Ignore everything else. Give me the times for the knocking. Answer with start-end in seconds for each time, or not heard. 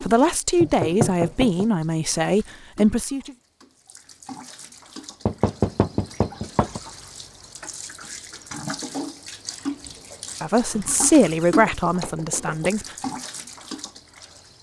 0.6-1.6, 5.2-6.8, 10.7-12.7.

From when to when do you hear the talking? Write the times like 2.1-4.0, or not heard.
0.0-3.4, 10.4-12.9.